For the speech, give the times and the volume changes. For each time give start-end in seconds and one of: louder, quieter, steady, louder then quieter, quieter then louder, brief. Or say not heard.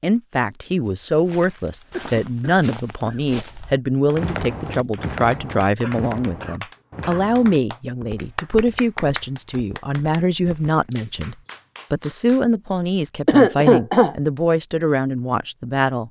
0.0-16.0 steady.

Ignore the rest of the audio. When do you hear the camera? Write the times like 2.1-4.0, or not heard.
not heard.